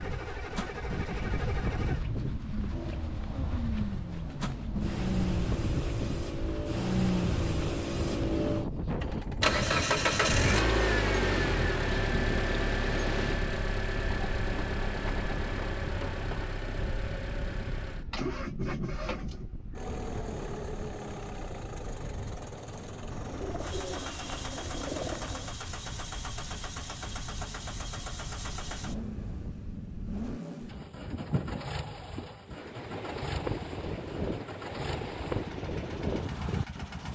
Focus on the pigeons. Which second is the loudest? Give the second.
25 s.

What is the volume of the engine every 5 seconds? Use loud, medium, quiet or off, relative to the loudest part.
medium, loud, loud, medium, medium, medium, medium, quiet.